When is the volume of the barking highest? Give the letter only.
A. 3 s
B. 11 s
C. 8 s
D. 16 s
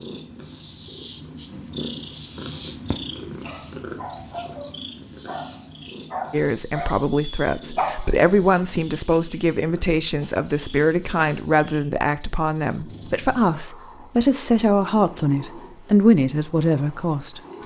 C.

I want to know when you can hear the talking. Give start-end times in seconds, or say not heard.
6.3-17.4.